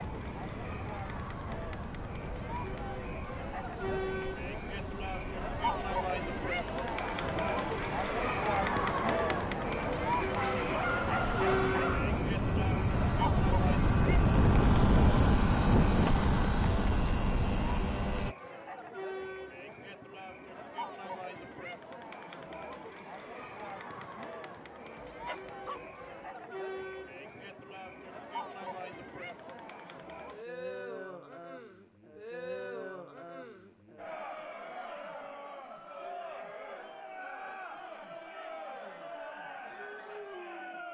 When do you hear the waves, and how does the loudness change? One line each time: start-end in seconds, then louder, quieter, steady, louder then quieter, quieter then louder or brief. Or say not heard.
not heard.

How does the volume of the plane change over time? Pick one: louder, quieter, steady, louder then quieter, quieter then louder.
louder.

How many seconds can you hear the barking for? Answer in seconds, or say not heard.
3 s.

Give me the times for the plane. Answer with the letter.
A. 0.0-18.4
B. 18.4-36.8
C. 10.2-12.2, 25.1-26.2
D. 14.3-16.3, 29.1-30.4
A.